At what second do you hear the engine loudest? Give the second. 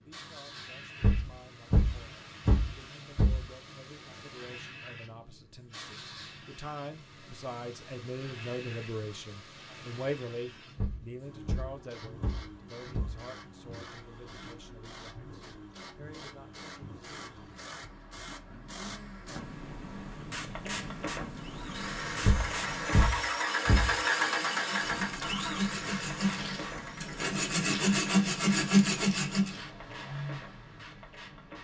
24 s.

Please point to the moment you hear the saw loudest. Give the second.
29 s.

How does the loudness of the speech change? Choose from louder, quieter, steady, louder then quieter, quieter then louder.
louder then quieter.